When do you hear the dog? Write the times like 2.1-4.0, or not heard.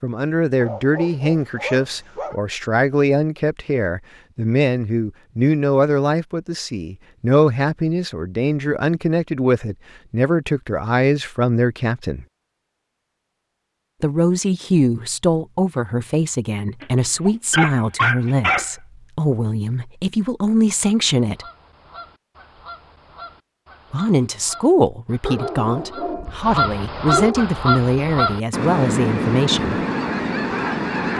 0.6-2.4, 16.8-18.7, 25.2-27.5.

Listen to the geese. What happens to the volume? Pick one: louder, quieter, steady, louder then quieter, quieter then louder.
louder.